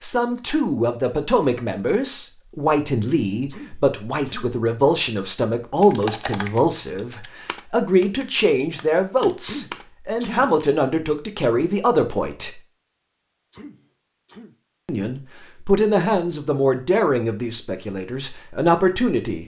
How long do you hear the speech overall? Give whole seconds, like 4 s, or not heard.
17 s.